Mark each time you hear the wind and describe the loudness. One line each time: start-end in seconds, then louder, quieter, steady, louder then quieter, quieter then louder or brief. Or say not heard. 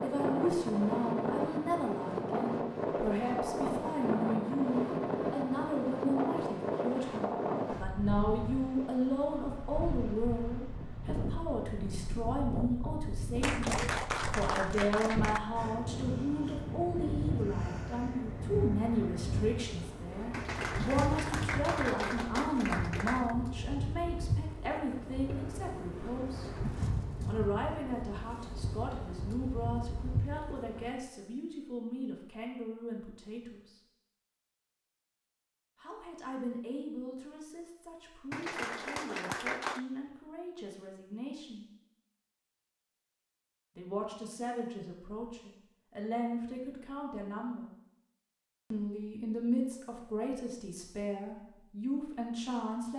0.0-30.9 quieter.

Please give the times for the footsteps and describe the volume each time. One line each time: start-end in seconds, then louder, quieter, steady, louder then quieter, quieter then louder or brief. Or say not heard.
not heard.